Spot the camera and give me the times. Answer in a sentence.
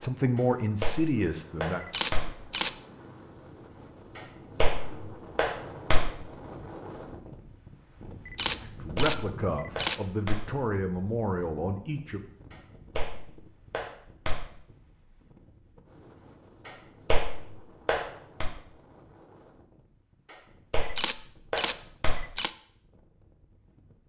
The camera can be heard from 1.8 to 2.8 s, from 8.2 to 10.1 s and from 20.8 to 22.5 s.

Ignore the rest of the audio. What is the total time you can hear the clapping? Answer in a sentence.
You can hear the clapping for 9 seconds altogether.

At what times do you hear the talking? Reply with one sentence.
The talking can be heard from 0.0 to 1.9 s and from 8.6 to 12.2 s.